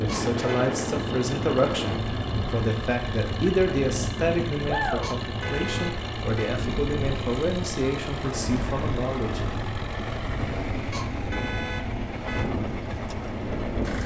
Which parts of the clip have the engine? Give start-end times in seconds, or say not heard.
0.0-14.0.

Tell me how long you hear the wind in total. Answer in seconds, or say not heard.
14 s.